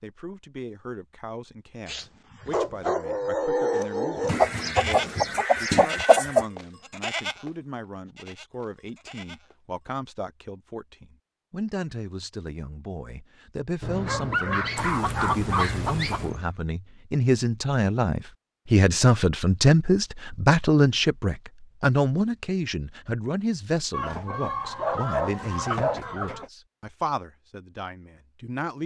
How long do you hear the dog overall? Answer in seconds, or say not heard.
7 s.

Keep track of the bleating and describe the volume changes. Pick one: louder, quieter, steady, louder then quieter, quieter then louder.
quieter.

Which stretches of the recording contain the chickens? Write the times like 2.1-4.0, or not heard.
4.2-6.5, 14.8-16.3, 23.9-26.5.